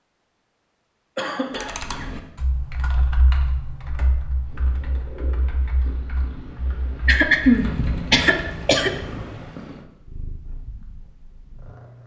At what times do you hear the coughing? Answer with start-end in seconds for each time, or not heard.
1.1-2.0, 7.0-8.9.